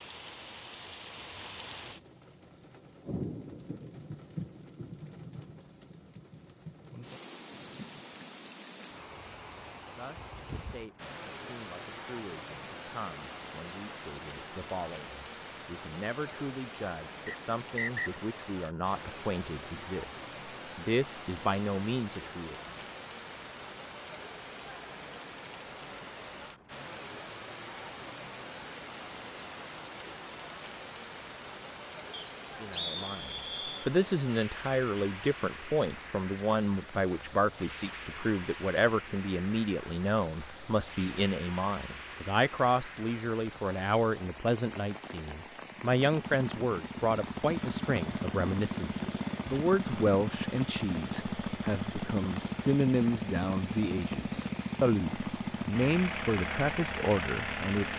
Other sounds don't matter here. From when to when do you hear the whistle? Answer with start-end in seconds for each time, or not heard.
17.2-18.1, 32.1-33.9.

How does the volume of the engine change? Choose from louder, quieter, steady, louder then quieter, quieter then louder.
steady.